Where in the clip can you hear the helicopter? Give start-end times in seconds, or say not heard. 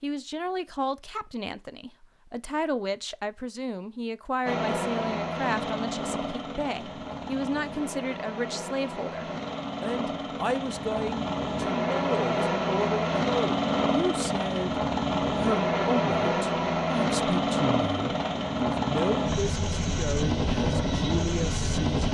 4.5-22.0.